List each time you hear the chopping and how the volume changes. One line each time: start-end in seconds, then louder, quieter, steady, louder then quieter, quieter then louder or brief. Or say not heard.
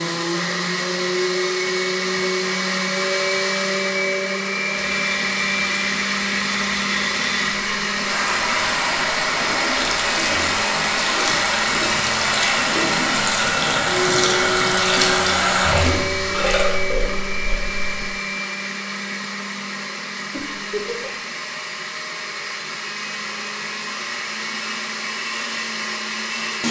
not heard.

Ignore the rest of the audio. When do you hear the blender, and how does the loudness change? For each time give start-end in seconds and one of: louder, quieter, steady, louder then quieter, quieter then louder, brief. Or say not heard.
0.0-26.6 quieter.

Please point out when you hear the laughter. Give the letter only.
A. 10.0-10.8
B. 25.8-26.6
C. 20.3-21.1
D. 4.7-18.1
C.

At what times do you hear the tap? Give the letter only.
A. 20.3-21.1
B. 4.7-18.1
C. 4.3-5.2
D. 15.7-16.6
B.